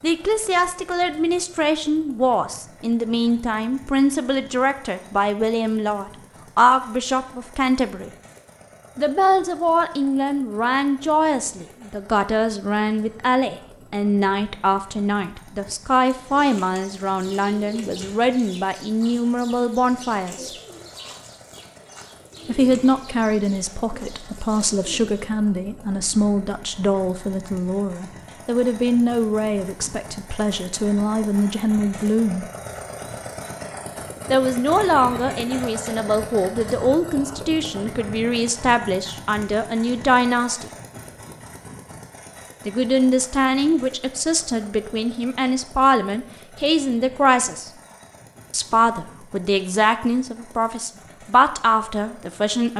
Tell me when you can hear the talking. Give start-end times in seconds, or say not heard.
0.0-8.1, 8.9-20.5, 22.4-32.5, 34.3-40.7, 42.6-47.7, 48.5-52.7.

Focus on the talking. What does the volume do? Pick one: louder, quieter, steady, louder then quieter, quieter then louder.
steady.